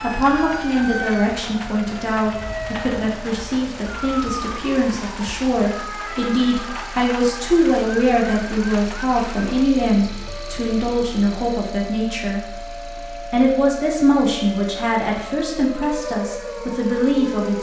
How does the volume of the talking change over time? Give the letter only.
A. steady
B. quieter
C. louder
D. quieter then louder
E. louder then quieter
A.